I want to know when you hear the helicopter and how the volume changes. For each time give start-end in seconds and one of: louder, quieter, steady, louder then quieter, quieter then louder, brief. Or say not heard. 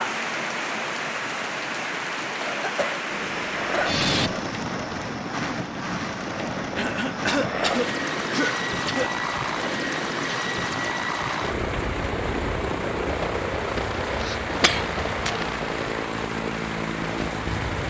3.1-17.8 steady.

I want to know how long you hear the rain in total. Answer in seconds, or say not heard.
18 s.